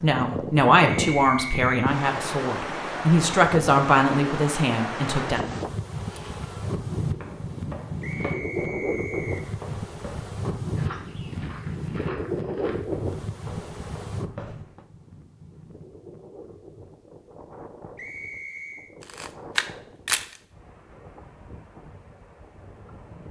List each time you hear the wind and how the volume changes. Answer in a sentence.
The wind can be heard from 0.0 to 23.2 s, getting quieter.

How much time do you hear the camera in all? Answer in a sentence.
You can hear the camera for 2 seconds altogether.